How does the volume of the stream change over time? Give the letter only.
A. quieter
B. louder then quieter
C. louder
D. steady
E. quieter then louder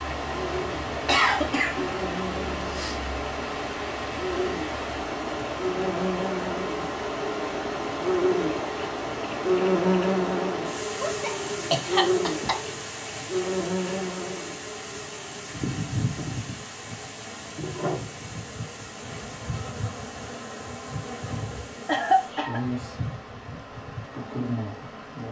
A.